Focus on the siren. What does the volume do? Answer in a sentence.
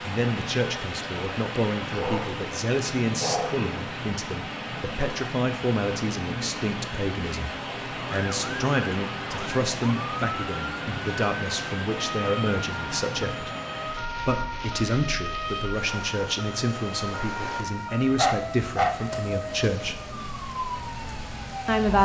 The loudness of the siren stays about the same.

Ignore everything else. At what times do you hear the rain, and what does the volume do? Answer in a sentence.
You can hear the rain from 0.0 to 22.0 s, getting quieter.